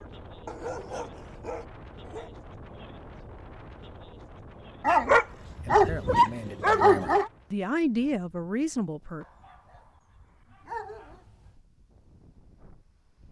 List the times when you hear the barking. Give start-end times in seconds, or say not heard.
0.5-2.3, 4.8-7.3, 9.2-11.6.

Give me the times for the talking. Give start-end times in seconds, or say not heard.
5.5-9.2.